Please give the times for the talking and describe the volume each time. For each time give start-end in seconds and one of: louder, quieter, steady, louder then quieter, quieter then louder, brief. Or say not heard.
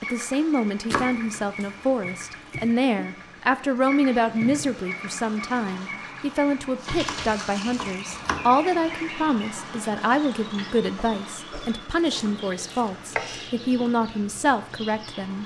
0.0-15.4 steady.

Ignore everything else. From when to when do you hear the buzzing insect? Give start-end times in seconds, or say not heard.
not heard.